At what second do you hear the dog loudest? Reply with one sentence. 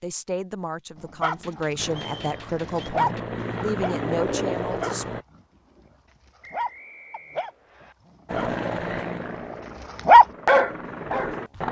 The loudest moment of the dog is at 10 seconds.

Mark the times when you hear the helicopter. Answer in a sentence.
You can hear the helicopter from 1.8 to 5.2 s and from 8.2 to 11.6 s.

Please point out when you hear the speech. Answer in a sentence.
The speech can be heard from 0.0 to 5.0 s.